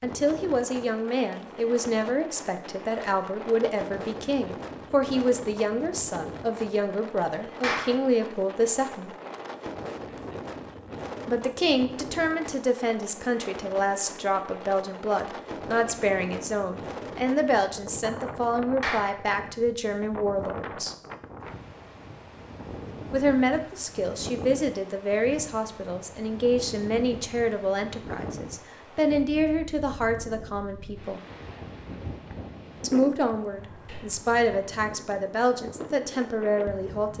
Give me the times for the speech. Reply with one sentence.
You can hear the speech from 0.0 to 9.1 s, from 11.2 to 20.9 s, from 23.1 to 31.2 s and from 32.8 to 37.1 s.